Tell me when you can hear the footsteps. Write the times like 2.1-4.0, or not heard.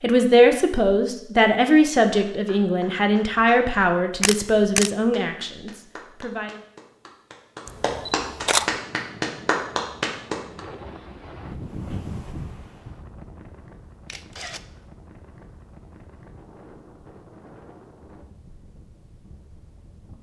not heard.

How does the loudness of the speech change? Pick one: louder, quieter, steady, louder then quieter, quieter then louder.
quieter.